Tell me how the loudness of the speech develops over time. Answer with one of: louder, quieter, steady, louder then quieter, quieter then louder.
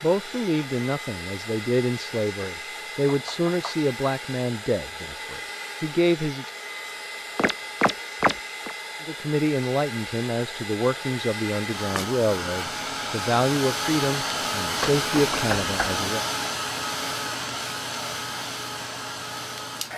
steady.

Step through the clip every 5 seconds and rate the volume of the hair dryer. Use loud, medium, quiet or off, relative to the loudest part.
medium, medium, loud, loud.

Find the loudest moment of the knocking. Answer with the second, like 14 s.
8 s.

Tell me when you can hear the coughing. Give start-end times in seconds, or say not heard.
not heard.